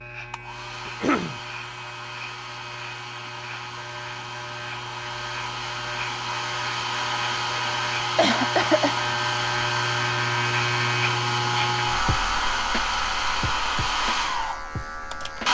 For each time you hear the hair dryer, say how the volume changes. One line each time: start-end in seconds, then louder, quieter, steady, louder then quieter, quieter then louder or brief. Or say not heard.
0.1-15.4 louder.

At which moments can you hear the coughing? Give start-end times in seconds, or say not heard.
0.8-1.4, 8.2-8.9.